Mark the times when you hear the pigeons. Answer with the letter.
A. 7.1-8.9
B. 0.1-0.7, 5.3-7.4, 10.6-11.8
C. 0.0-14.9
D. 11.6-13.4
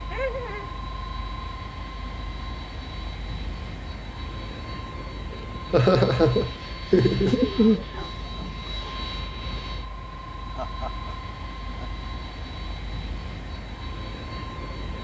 A.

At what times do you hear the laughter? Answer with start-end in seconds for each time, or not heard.
0.1-0.7, 5.3-7.4, 10.6-11.8.